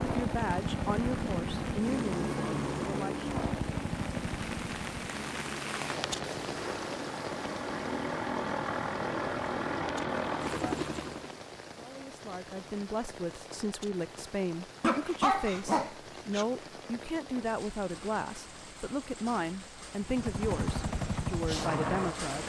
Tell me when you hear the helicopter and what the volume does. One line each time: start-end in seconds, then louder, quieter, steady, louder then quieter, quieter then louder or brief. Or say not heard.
0.0-11.4 quieter then louder
20.0-22.4 brief.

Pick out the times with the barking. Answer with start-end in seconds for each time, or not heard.
14.8-16.4.